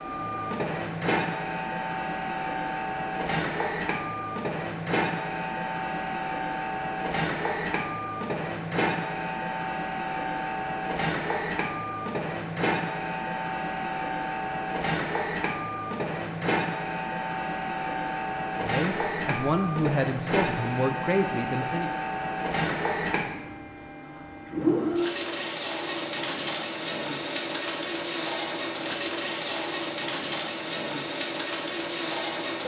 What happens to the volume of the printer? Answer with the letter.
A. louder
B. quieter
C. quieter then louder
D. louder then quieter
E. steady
E.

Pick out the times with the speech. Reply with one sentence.
The speech can be heard from 18.6 to 21.9 s.